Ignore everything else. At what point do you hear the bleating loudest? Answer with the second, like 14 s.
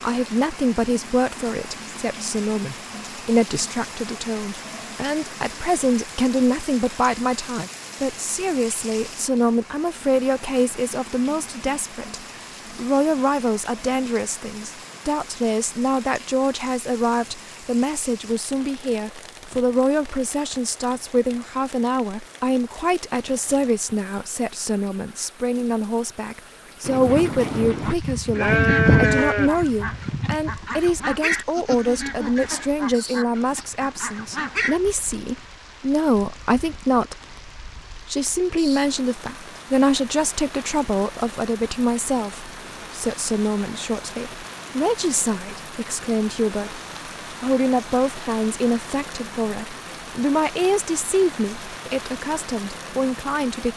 29 s.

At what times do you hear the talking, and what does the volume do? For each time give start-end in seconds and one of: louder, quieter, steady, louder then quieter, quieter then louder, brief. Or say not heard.
0.0-37.2 steady
38.0-53.7 steady.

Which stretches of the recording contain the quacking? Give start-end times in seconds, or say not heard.
26.8-34.8.